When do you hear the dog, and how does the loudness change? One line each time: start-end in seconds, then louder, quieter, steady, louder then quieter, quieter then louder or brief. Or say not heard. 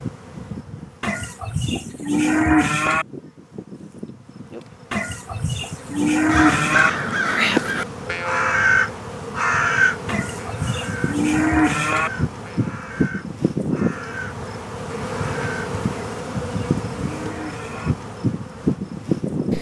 not heard.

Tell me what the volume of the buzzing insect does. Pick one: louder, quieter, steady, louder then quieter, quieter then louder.
louder.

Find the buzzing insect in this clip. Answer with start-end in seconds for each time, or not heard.
0.0-19.5.